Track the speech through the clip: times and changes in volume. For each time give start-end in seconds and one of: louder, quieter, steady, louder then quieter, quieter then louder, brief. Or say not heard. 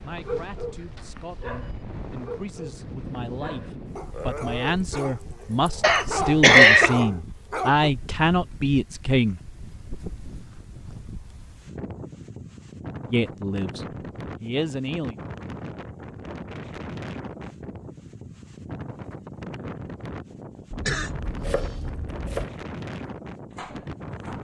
0.0-9.4 louder
13.1-15.2 brief.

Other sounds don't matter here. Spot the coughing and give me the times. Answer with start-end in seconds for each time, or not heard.
5.8-7.0, 20.7-22.4.